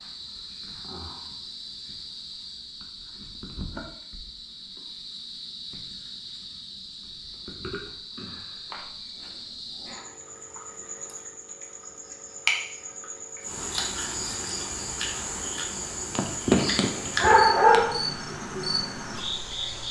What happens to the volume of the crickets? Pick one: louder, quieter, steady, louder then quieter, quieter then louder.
louder.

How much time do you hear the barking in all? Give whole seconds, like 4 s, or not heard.
2 s.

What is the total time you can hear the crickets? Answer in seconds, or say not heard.
20 s.